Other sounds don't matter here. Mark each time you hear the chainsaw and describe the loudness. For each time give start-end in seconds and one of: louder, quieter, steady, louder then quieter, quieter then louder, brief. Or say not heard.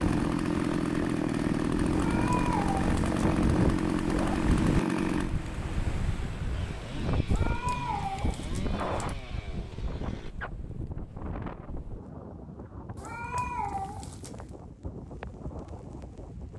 0.0-10.3 quieter.